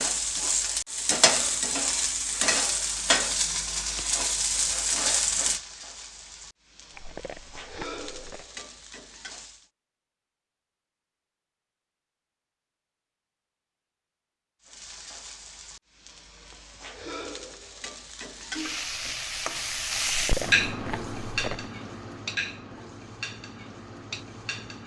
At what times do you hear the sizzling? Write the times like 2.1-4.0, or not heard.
0.0-9.7, 14.6-24.8.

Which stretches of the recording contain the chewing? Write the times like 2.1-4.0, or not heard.
6.9-8.4, 20.1-21.7.